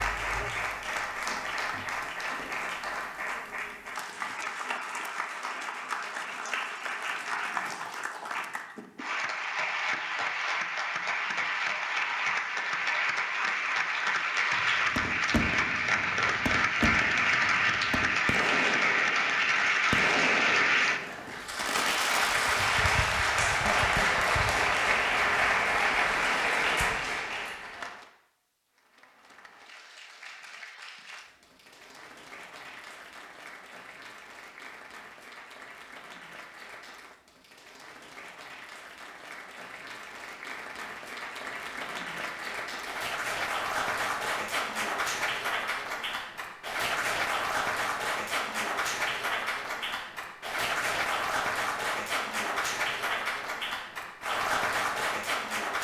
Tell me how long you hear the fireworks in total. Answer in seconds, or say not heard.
8 s.